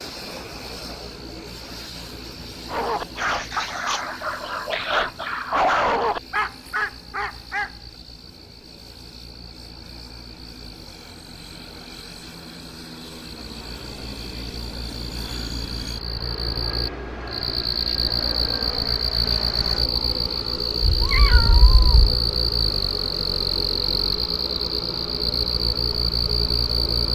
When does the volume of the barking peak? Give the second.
6 s.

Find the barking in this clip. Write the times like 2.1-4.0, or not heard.
2.6-7.8.